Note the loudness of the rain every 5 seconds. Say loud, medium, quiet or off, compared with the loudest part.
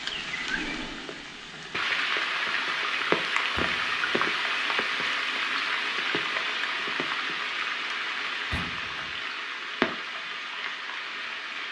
loud, loud, medium.